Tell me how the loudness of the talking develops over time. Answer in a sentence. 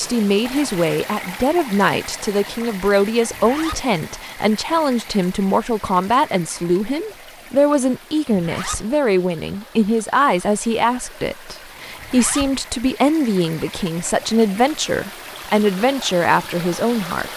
The loudness of the talking stays about the same.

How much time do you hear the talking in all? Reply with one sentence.
The talking can be heard for 17 seconds in total.